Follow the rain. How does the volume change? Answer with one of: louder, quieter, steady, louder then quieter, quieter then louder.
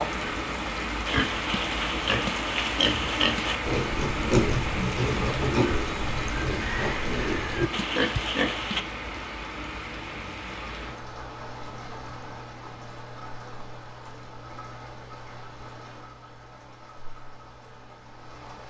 quieter.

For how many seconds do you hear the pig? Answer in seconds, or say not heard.
8 s.